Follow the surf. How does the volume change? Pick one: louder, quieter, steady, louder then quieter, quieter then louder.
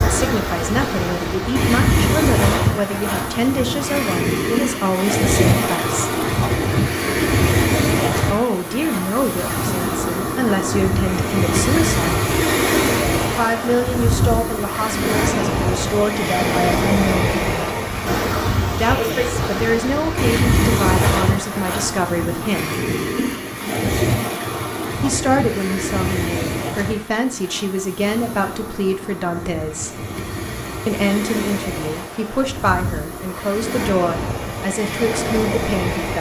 quieter.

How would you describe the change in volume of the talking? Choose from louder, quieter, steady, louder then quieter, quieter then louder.
steady.